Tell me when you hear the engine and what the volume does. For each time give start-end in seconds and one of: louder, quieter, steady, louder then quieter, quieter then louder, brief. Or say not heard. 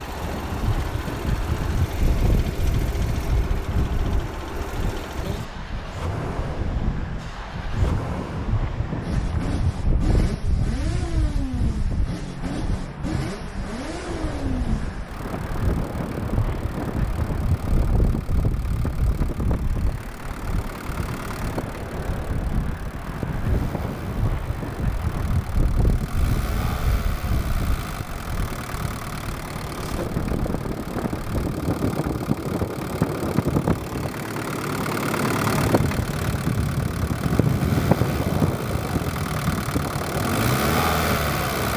0.0-41.7 louder.